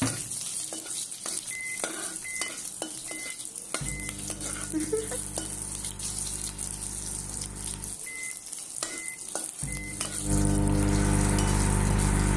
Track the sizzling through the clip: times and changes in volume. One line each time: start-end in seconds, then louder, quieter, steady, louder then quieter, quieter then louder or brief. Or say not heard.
0.0-12.3 steady.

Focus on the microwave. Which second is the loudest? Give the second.
11 s.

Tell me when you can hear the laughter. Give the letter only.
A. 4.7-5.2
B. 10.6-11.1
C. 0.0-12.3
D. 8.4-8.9
A.